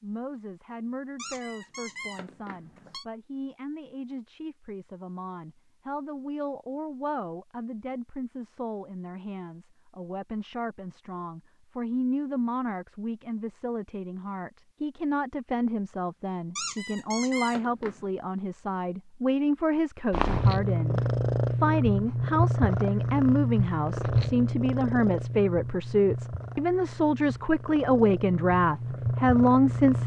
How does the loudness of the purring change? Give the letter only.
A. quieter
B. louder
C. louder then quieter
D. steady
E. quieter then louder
E.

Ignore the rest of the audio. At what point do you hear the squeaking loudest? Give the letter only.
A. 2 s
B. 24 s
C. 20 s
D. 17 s
D.